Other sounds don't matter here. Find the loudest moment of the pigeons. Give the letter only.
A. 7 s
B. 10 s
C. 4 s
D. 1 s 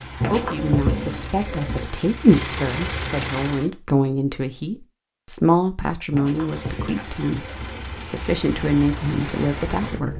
D.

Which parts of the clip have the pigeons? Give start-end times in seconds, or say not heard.
0.2-1.9, 6.1-7.8.